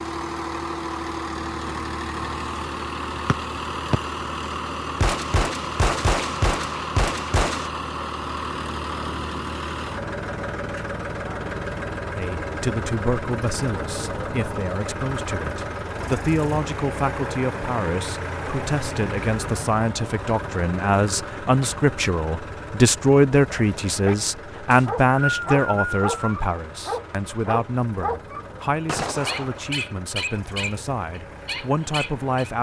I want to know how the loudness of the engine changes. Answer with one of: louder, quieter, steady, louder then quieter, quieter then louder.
quieter.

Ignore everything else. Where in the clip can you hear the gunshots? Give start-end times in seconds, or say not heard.
5.0-7.7, 28.9-29.7.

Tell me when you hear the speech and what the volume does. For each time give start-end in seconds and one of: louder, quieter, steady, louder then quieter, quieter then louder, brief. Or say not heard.
12.2-32.5 louder then quieter.